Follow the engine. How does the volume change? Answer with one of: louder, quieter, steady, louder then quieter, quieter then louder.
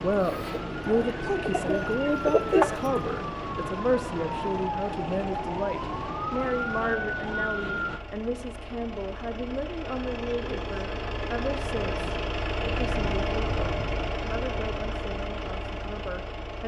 louder.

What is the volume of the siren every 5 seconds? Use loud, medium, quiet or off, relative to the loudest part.
loud, loud, off, off.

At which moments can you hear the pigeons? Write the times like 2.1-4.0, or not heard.
0.1-3.0.